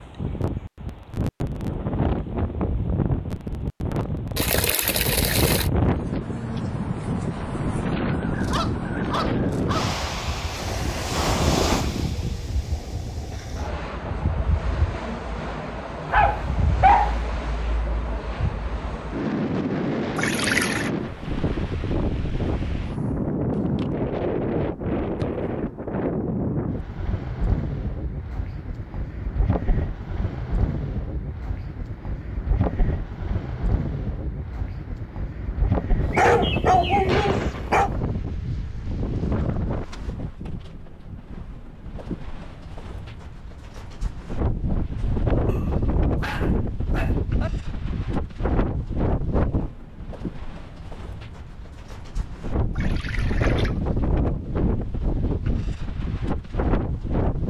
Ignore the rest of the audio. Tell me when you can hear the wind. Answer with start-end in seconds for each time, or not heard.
0.0-57.4.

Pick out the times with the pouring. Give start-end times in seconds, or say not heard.
4.3-5.7, 20.1-20.9, 52.7-53.8.